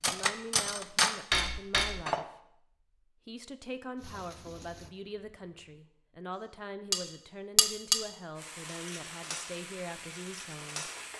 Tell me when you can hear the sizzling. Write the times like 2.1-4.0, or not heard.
4.0-5.8, 8.3-11.1.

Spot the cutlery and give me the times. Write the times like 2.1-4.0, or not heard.
0.0-2.2, 6.9-11.1.